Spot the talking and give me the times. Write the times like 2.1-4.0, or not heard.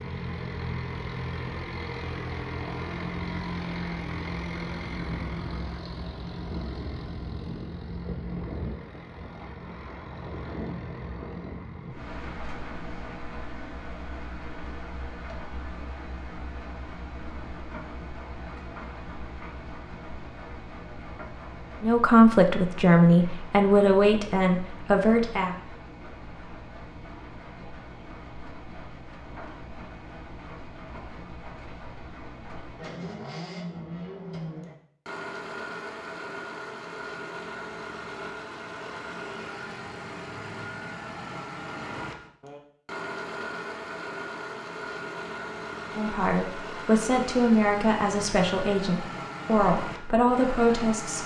21.8-25.6, 46.0-51.2.